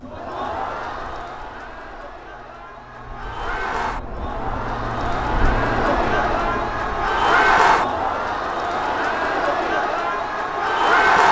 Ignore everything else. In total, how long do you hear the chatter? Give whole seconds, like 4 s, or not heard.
11 s.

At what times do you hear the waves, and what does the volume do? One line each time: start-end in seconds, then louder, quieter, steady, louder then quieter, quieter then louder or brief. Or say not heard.
not heard.